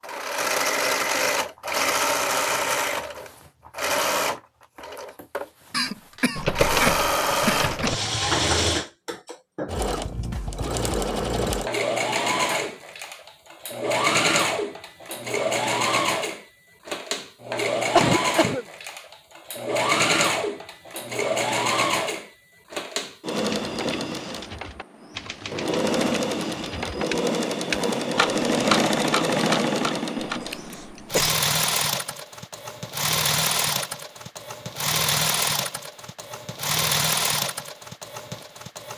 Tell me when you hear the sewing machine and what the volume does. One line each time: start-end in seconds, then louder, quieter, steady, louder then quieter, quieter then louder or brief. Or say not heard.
0.0-38.9 steady.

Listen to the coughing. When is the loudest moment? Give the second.
18 s.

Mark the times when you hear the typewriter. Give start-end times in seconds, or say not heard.
6.3-8.1, 23.4-30.4.